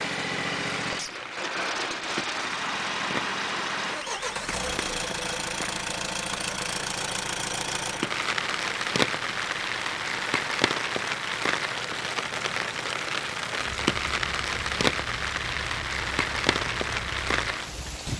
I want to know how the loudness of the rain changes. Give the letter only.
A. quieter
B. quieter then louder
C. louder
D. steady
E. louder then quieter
C.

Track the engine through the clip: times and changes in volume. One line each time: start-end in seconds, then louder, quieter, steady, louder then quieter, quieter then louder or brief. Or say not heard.
0.0-17.9 quieter.